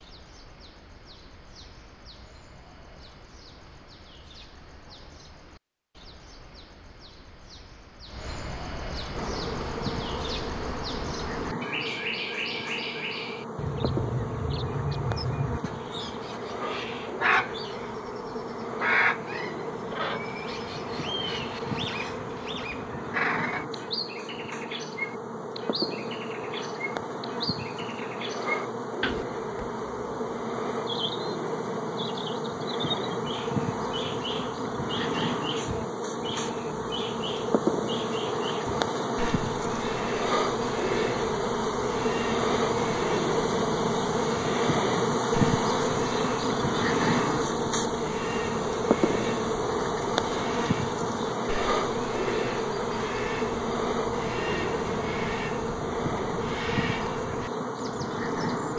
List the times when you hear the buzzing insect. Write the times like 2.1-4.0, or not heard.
9.2-58.7.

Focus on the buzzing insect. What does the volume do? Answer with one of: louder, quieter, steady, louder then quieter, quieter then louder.
louder.